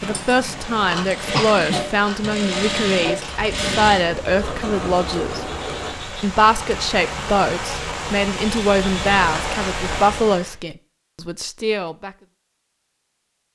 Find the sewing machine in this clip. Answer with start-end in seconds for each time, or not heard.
0.0-6.0.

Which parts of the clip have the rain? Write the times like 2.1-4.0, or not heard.
0.0-10.6.